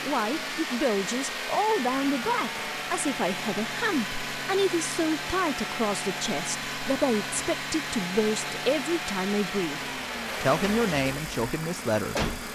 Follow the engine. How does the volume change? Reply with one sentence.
The volume of the engine stays about the same.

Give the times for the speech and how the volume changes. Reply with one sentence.
The speech can be heard from 0.0 to 12.3 s, at a steady volume.